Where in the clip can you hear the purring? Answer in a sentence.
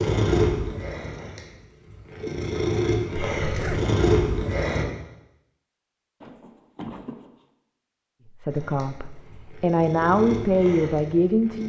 You can hear the purring from 0.0 to 4.8 s and from 8.5 to 11.6 s.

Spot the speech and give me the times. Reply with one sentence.
You can hear the speech from 8.4 to 11.6 s.